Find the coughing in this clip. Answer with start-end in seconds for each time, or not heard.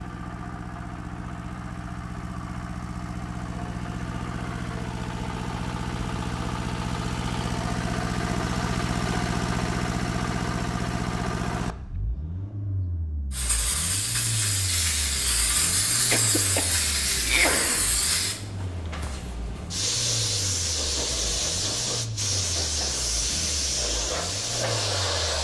16.1-17.9.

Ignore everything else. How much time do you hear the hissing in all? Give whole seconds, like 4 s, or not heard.
12 s.